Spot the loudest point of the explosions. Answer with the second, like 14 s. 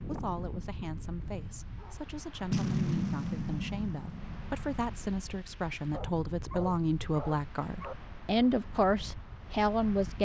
3 s.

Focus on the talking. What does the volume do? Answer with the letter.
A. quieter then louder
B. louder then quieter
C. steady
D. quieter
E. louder
E.